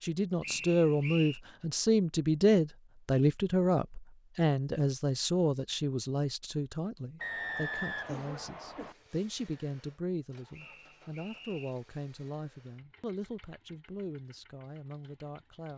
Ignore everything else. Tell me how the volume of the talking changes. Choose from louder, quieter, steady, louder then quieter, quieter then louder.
quieter.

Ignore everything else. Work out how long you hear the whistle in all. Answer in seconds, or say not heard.
4 s.